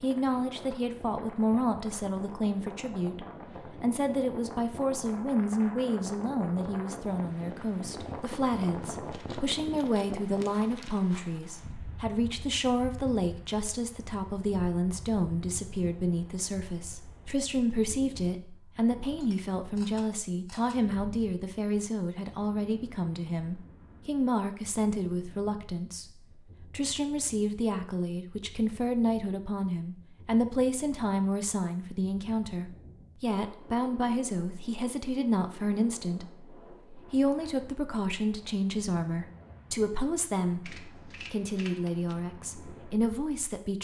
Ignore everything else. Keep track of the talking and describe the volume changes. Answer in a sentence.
The loudness of the talking stays about the same.